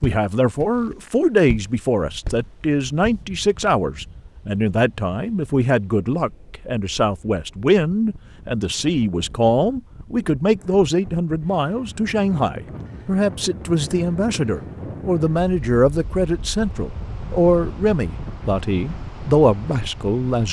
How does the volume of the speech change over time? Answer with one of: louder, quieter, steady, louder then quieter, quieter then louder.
steady.